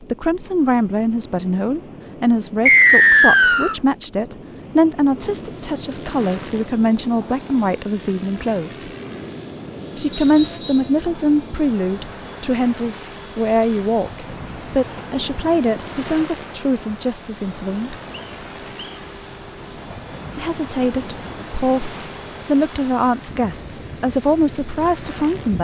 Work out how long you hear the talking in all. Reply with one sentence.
The talking can be heard for 22 seconds in total.